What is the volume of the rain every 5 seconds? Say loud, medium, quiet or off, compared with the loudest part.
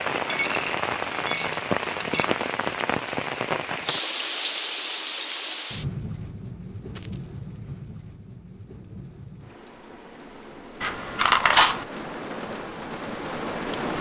loud, medium, medium.